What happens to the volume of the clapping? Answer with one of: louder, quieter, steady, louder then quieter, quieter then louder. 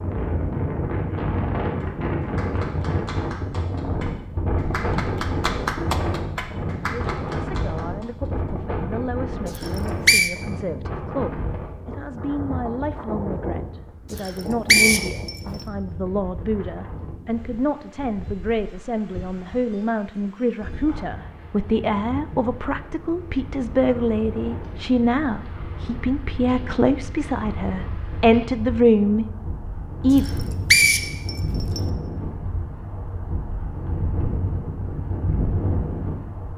louder then quieter.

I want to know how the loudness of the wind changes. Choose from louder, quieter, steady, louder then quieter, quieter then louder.
quieter then louder.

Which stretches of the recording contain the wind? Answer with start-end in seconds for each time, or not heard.
0.0-36.5.